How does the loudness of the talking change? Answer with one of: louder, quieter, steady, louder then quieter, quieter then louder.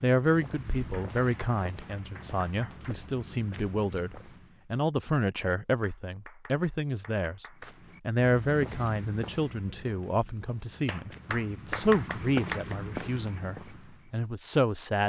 steady.